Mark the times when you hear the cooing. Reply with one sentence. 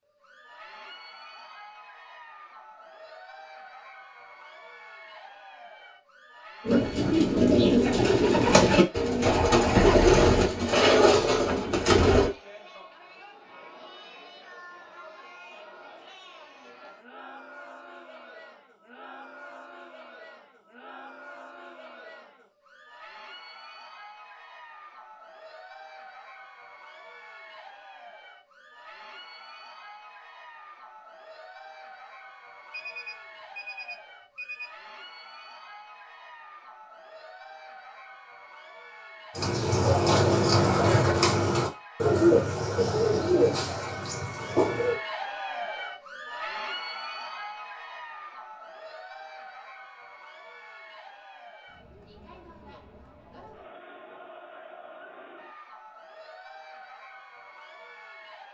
The cooing can be heard from 6.7 to 12.3 s and from 39.4 to 45.0 s.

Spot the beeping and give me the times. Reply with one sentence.
You can hear the beeping from 32.7 to 34.7 s.